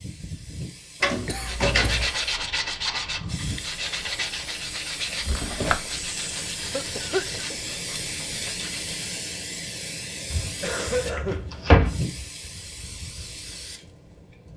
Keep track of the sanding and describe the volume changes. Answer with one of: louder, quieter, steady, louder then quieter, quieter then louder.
quieter.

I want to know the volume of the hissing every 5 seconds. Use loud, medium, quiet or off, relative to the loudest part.
medium, loud, loud.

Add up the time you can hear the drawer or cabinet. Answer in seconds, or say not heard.
4 s.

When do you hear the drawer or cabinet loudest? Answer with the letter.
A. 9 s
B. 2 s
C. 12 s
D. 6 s
C.